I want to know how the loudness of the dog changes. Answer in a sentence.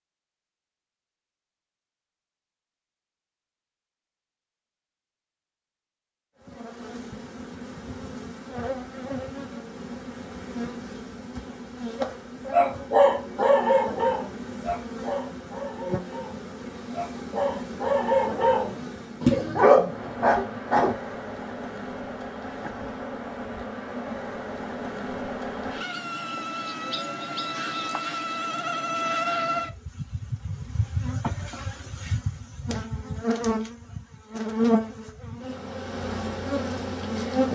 The loudness of the dog goes down, then up.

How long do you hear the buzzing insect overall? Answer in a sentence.
You can hear the buzzing insect for 31 seconds altogether.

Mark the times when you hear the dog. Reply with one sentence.
You can hear the dog from 12.5 to 20.9 s.